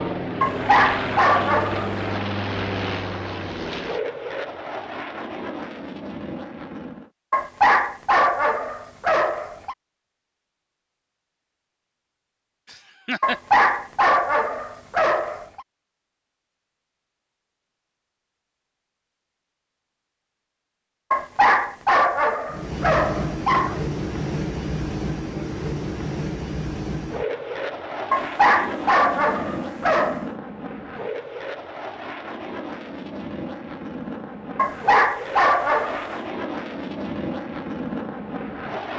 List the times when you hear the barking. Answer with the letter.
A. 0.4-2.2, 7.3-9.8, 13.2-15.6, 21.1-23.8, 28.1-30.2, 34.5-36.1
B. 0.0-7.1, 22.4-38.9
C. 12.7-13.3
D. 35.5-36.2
A.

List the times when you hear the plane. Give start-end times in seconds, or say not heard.
0.0-7.1, 22.4-38.9.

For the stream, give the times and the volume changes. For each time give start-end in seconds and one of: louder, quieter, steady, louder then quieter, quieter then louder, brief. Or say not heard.
not heard.